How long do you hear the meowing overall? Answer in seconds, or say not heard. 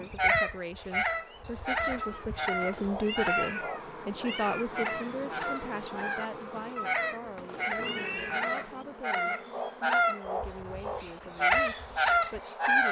5 s.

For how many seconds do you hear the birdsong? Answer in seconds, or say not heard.
13 s.